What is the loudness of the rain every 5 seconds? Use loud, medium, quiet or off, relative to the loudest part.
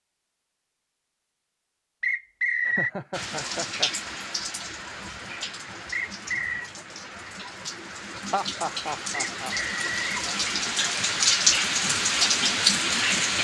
medium, quiet, loud.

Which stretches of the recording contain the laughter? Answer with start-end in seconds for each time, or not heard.
2.6-3.9, 8.3-9.6.